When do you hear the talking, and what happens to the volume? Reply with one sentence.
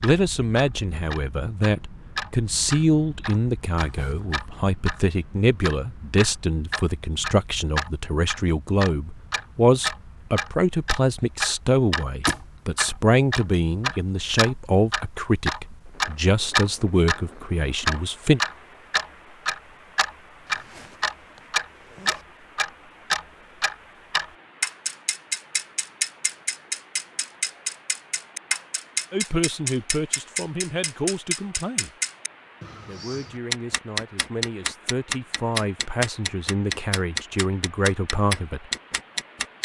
You can hear the talking from 0.0 to 18.4 s, at a steady volume; briefly from 29.1 to 31.9 s; and from 32.9 to 38.7 s, getting louder.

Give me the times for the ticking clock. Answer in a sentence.
The ticking clock can be heard from 0.0 to 39.6 s.